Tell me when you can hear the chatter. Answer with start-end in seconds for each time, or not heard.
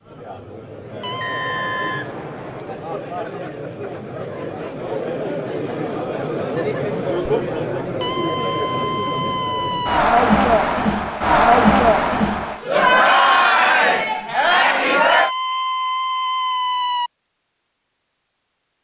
0.0-15.3.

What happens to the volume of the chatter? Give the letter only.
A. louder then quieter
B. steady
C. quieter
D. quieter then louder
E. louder
E.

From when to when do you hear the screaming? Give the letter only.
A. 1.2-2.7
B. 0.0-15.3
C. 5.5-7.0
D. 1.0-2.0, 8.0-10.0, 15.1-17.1
D.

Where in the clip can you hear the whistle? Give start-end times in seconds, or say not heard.
1.2-2.7.